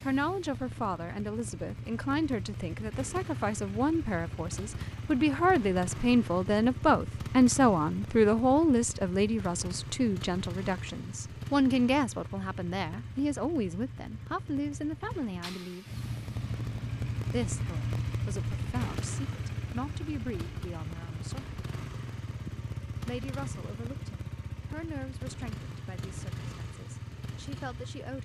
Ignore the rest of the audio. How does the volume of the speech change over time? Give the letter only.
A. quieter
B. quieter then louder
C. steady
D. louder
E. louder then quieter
E.